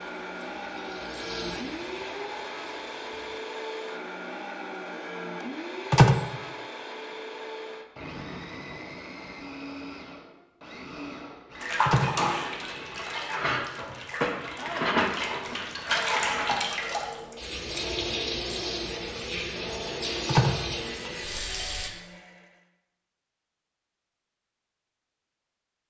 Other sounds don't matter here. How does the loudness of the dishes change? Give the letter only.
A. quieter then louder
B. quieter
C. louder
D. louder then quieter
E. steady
D.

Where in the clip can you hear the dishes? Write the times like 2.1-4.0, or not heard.
11.5-16.7.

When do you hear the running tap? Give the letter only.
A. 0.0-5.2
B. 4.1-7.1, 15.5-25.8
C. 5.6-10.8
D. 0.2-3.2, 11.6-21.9
D.